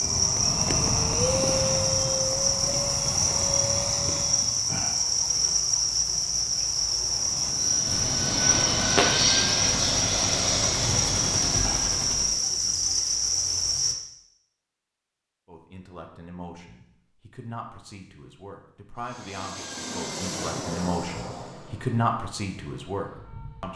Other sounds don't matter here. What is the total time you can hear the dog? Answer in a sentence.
You can't hear the dog here.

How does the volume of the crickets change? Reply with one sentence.
The loudness of the crickets stays about the same.